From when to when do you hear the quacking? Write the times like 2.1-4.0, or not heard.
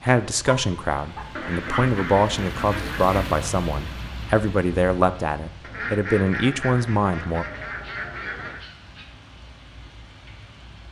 1.4-3.4, 5.6-8.6.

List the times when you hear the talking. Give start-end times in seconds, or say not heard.
0.0-7.5.